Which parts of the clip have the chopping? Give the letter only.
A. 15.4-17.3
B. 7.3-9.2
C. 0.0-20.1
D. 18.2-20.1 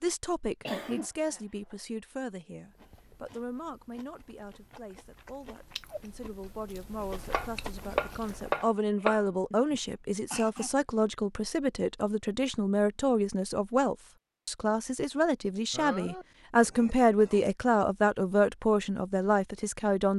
B.